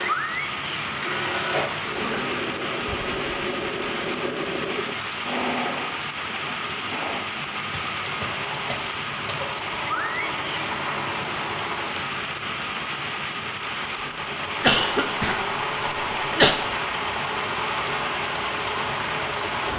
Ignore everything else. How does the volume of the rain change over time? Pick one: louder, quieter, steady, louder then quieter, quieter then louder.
steady.